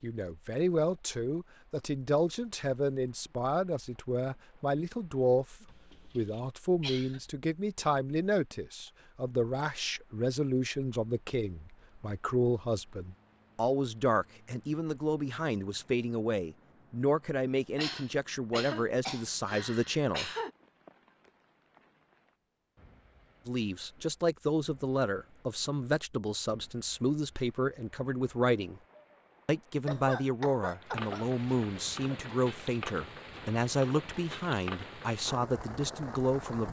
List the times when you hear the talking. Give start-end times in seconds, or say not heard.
0.0-5.5, 6.2-20.3, 23.4-28.8, 29.4-36.6.